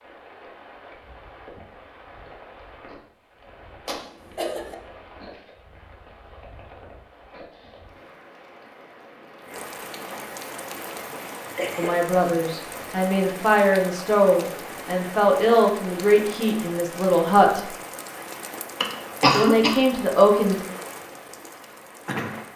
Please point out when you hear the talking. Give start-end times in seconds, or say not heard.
11.8-17.7, 19.3-20.6.